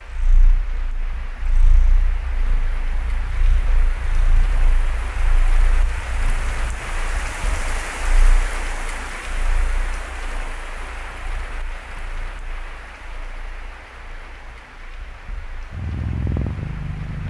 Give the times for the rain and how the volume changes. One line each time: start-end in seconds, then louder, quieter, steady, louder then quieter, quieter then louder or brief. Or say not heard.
0.0-17.2 louder then quieter.